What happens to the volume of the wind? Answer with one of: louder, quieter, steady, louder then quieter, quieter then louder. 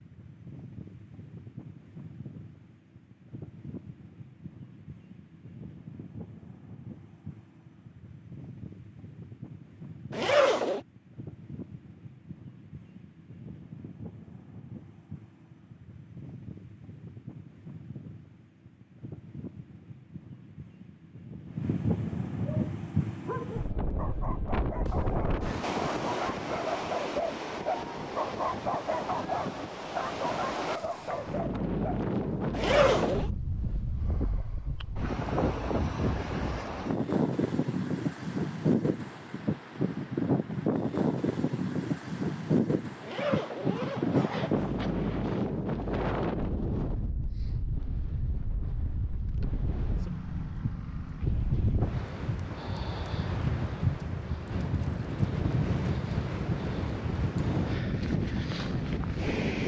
louder.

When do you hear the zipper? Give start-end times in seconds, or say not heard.
10.1-10.8, 32.5-33.3, 43.0-45.5.